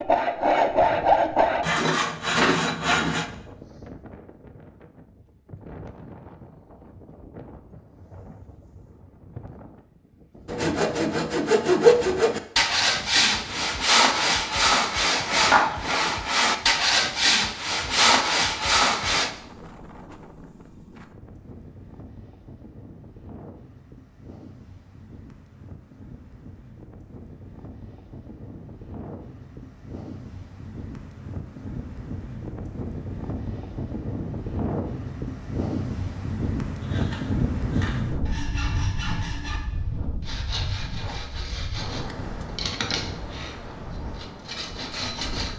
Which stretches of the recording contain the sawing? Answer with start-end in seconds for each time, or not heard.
0.0-3.2, 10.4-19.3, 36.8-45.5.